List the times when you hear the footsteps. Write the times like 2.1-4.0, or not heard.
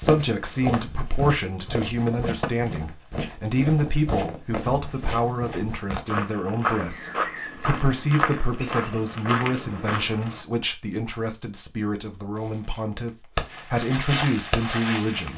0.0-10.4, 13.5-15.3.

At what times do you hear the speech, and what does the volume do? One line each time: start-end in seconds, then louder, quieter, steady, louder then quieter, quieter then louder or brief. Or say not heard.
0.0-15.3 steady.